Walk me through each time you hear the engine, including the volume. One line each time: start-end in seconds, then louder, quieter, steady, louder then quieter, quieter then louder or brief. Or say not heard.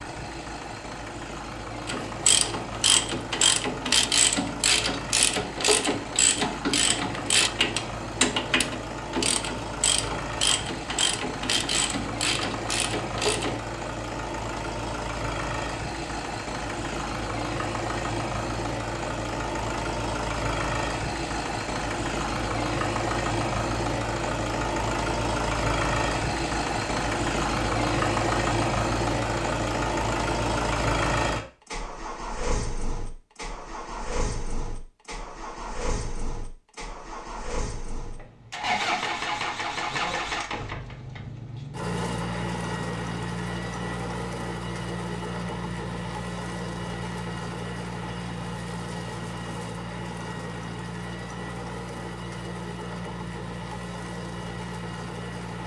0.0-55.6 louder then quieter.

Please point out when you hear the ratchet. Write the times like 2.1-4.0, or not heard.
1.9-13.6.